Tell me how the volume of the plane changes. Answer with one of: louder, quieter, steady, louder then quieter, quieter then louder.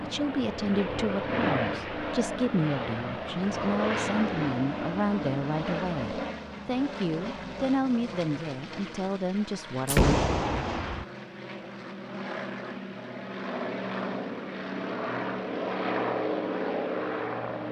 quieter then louder.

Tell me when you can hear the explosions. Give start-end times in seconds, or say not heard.
9.8-11.1.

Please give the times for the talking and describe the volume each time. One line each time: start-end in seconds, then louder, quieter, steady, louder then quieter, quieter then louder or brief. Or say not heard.
0.0-10.2 steady.